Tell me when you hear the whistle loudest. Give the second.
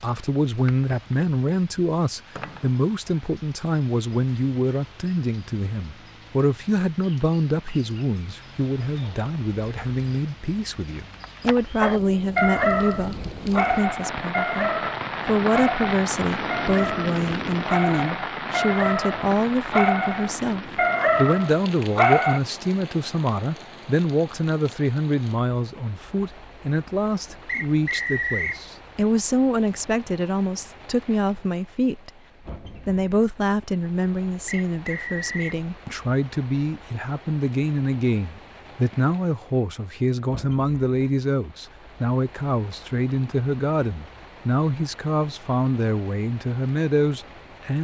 28 s.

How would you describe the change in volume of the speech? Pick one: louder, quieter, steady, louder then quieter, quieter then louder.
steady.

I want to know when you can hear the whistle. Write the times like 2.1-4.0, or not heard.
2.4-2.9, 27.4-28.6, 34.5-35.6.